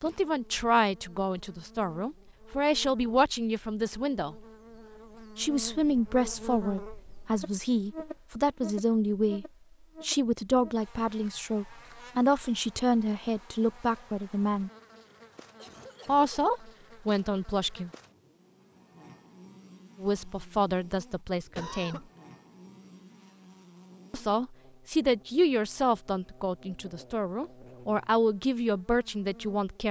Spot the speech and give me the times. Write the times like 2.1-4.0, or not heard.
0.0-4.4, 5.3-14.7, 16.1-17.9, 20.0-22.0, 24.1-29.8.